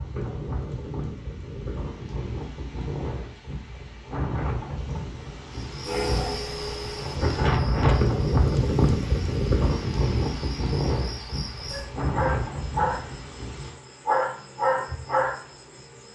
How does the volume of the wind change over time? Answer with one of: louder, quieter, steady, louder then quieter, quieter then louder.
louder then quieter.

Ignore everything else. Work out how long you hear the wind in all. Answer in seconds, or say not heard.
14 s.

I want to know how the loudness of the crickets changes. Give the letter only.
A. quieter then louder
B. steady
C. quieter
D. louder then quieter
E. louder
A.